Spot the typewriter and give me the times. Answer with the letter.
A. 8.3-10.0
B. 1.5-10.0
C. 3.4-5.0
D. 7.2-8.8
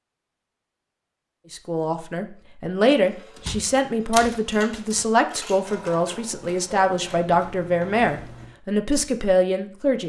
C.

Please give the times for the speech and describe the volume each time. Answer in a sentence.
The speech can be heard from 1.5 to 10.0 s, at a steady volume.